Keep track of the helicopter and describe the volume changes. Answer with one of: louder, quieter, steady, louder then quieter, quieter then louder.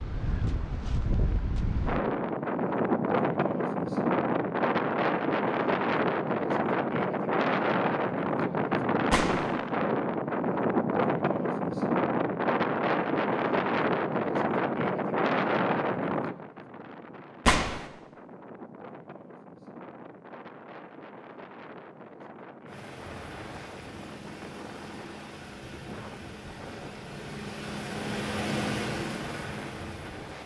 louder.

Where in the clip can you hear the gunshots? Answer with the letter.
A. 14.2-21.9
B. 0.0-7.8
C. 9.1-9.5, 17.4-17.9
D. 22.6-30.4
C.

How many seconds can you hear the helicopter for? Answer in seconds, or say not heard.
8 s.